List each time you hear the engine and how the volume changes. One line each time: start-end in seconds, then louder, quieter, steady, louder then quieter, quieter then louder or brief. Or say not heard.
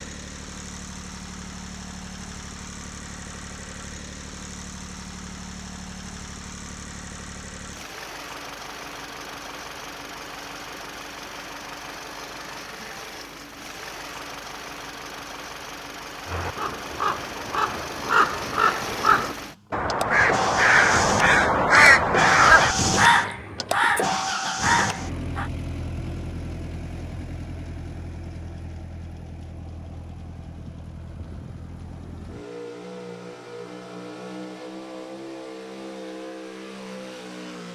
0.0-37.7 louder then quieter.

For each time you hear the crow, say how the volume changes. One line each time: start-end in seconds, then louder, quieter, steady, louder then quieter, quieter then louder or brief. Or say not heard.
16.2-25.5 louder then quieter.